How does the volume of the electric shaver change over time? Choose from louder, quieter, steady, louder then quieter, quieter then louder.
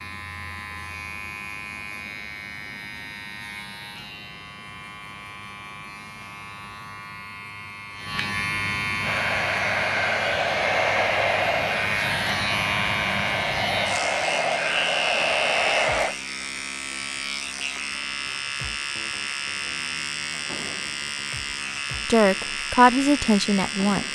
louder.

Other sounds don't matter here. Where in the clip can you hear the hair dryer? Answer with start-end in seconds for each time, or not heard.
9.0-16.1.